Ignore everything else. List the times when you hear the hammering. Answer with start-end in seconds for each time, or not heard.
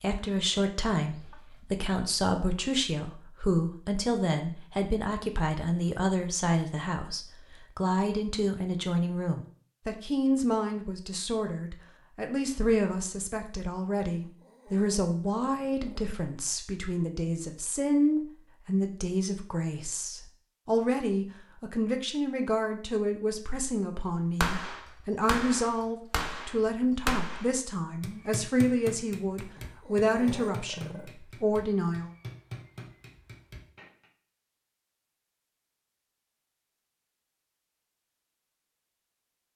24.4-34.0.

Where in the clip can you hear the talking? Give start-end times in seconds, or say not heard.
0.0-32.1.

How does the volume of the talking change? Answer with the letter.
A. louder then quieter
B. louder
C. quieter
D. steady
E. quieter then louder
D.